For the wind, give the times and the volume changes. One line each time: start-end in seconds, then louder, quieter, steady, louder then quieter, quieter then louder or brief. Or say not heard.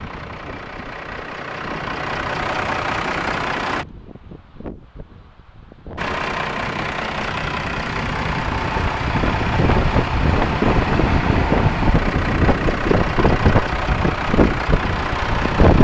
0.0-15.8 louder.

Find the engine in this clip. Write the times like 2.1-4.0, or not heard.
0.0-3.9, 6.0-15.8.